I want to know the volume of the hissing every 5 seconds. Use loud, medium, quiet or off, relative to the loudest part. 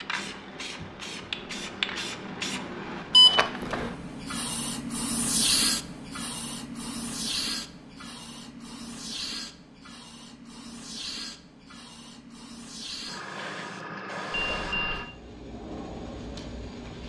loud, loud, medium, medium.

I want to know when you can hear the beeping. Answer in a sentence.
The beeping can be heard from 3.1 to 3.8 s and from 14.4 to 15.1 s.